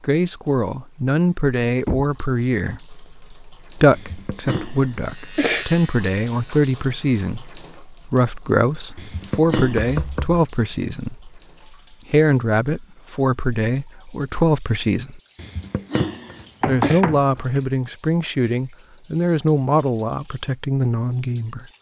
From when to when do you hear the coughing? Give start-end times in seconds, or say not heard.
3.9-5.7, 8.9-10.1, 15.3-17.0.